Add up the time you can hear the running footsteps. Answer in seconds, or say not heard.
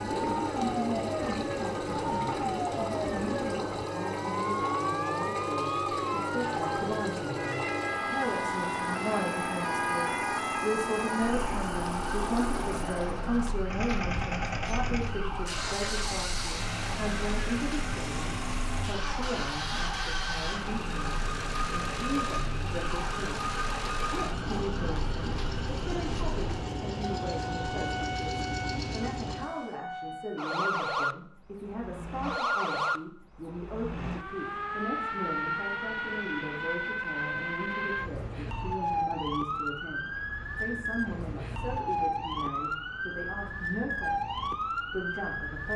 not heard.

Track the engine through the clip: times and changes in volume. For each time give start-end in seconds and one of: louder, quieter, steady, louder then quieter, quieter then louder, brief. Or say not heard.
0.0-29.8 steady.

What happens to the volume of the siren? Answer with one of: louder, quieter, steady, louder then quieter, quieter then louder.
quieter then louder.